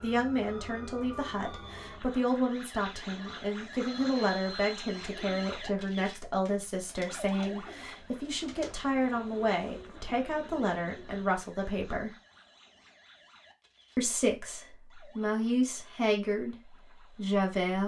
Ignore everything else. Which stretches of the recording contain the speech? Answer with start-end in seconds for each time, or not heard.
0.0-12.2, 13.9-16.6, 17.1-17.8.